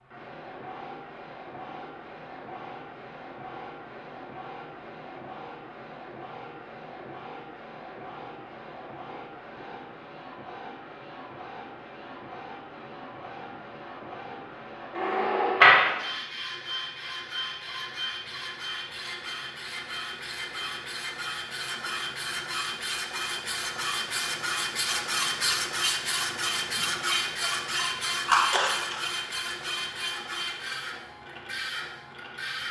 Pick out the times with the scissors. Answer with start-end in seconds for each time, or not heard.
28.2-29.0.